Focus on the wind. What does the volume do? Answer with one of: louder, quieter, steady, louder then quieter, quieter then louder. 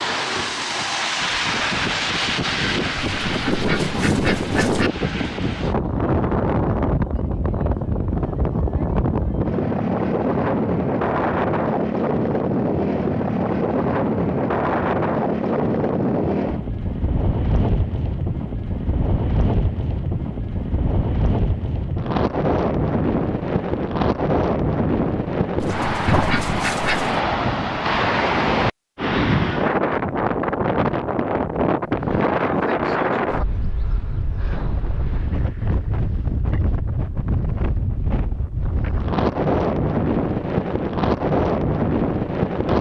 steady.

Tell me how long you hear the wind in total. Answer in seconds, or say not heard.
43 s.